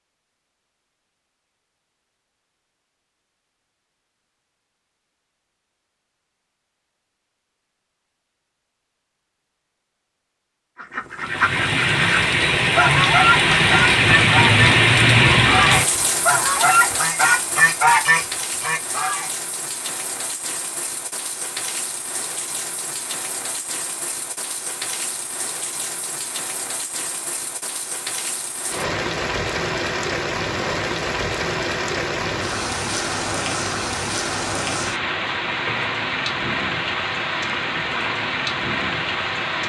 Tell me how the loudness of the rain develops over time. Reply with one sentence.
The loudness of the rain goes down, then up.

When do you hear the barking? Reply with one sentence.
The barking can't be heard in this clip.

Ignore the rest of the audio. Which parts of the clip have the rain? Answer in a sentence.
You can hear the rain from 11.2 to 39.6 s.